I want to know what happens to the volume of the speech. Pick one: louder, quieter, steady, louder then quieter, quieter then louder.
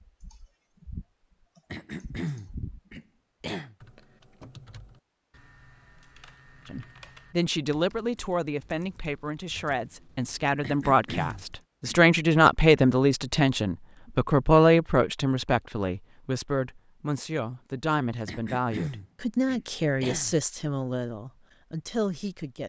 louder then quieter.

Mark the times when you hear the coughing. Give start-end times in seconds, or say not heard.
1.7-3.8, 10.6-11.9, 18.2-20.4.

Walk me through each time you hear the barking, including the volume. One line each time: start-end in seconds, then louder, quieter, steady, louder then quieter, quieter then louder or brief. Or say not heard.
not heard.